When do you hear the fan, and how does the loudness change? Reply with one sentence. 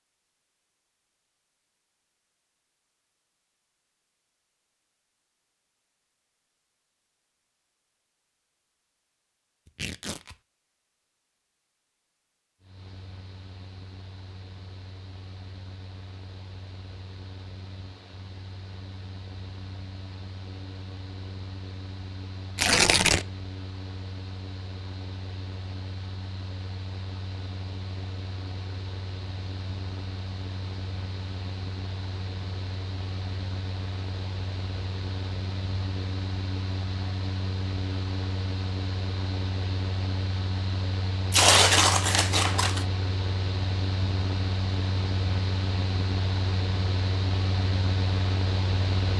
The fan can be heard from 12.6 to 49.1 s, getting louder.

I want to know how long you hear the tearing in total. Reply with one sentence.
The tearing can be heard for 3 seconds in total.